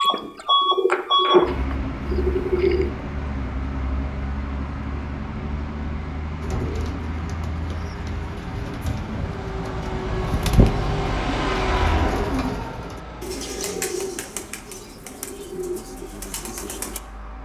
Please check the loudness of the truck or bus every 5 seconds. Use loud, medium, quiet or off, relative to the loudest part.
loud, medium, loud, quiet.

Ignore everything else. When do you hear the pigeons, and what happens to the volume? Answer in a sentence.
You can hear the pigeons briefly from 0.0 to 2.9 s; and from 6.4 to 17.0 s, getting louder then quieter.